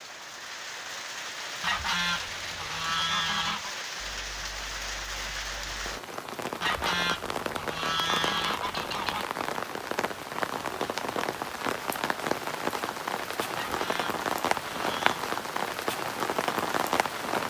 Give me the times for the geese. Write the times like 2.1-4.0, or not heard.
1.6-3.8, 6.6-9.2, 13.6-15.0.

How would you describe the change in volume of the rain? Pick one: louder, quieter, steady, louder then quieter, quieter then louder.
louder.